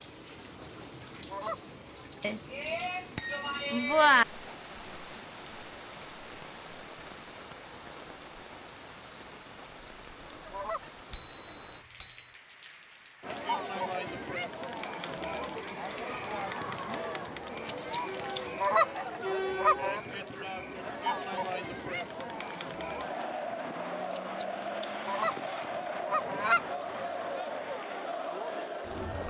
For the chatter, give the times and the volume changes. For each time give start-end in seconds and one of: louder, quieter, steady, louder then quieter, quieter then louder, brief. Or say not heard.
13.2-29.2 steady.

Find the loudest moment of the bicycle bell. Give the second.
4 s.